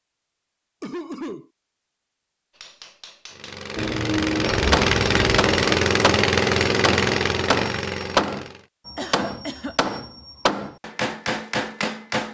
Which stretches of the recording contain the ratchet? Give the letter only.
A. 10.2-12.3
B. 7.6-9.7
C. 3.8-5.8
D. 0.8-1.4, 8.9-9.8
C.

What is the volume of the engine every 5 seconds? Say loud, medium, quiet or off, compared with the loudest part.
loud, loud, off.